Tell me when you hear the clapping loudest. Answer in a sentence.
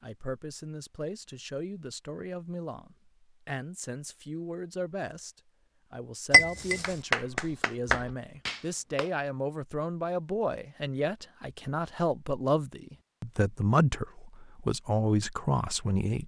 The loudest moment of the clapping is at 7 seconds.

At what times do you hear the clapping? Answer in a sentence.
You can hear the clapping from 6.8 to 9.1 s.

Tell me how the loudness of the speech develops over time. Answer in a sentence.
The volume of the speech goes up.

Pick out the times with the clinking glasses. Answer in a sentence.
You can hear the clinking glasses from 6.3 to 7.0 s.